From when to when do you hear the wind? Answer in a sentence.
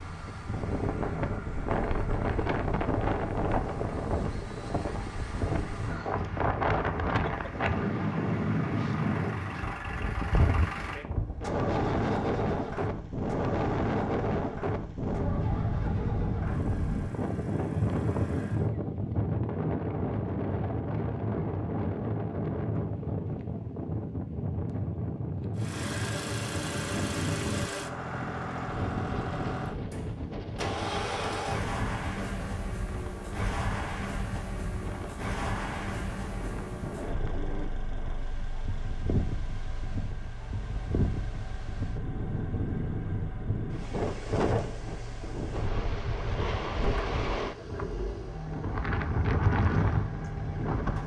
The wind can be heard from 0.0 to 51.0 s.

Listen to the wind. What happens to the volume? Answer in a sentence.
The volume of the wind goes down, then up.